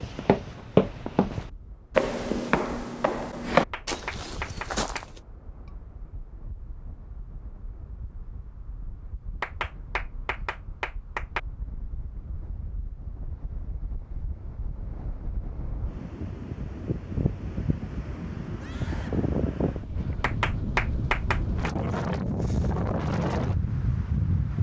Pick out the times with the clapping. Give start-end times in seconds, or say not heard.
3.5-5.0, 9.4-11.4, 20.2-21.5.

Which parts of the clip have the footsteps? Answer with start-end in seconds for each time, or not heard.
0.0-5.2.